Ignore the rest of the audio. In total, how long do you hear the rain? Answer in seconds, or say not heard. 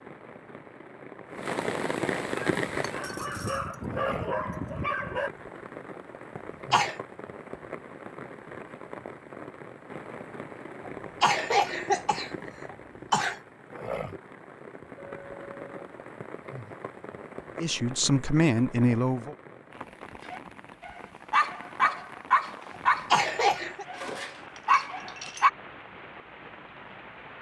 27 s.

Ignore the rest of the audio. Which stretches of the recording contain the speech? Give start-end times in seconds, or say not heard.
17.6-19.4.